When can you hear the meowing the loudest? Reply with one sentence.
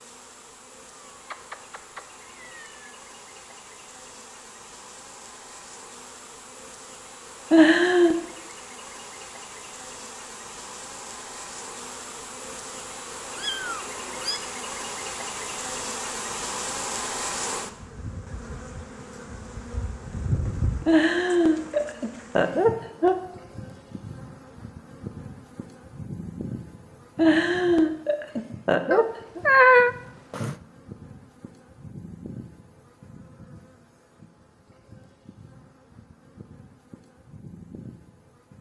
The volume of the meowing peaks at 30 seconds.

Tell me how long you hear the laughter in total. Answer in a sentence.
The laughter can be heard for 5 seconds in total.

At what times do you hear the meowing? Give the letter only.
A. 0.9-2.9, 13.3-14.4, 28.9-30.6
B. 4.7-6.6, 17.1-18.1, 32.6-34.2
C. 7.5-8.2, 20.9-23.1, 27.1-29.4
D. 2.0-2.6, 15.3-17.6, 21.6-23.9
A.